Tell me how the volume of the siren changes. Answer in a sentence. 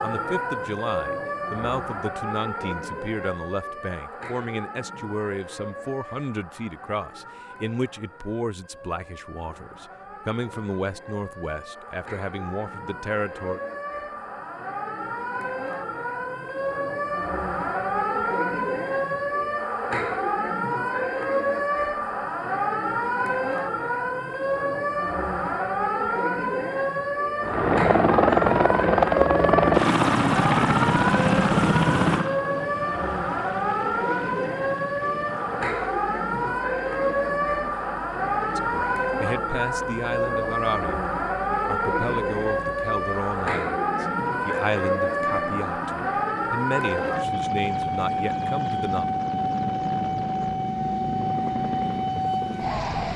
The volume of the siren goes up.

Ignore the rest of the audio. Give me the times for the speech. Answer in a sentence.
You can hear the speech from 0.0 to 13.6 s and from 38.5 to 49.0 s.